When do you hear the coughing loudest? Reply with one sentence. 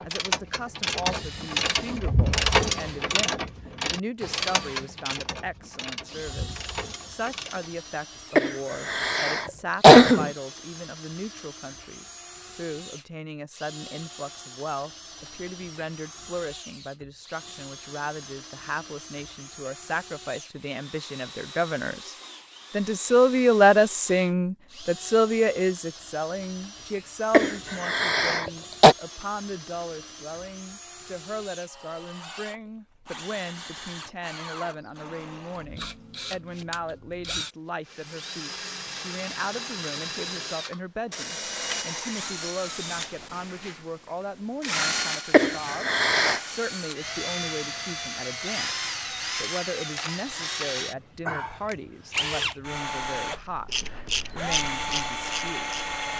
The loudest moment of the coughing is at 10 seconds.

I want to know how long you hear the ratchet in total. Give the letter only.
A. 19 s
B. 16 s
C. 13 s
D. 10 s
D.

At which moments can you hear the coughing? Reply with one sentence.
You can hear the coughing from 8.3 to 10.3 s, from 27.3 to 28.9 s and from 45.3 to 46.4 s.